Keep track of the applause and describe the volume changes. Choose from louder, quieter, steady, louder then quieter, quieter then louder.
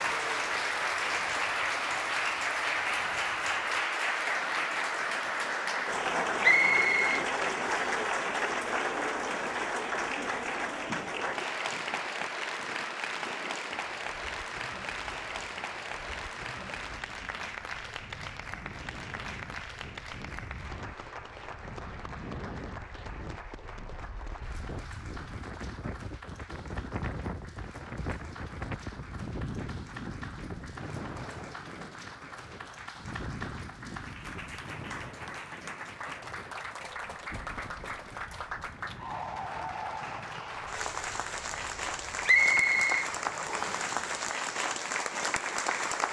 quieter then louder.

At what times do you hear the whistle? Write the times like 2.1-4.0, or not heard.
6.4-8.0, 42.2-43.9.